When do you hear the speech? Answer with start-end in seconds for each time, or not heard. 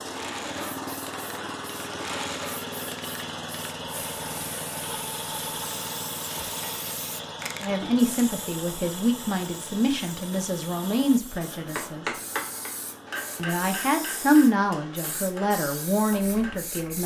7.6-12.1, 13.3-17.0.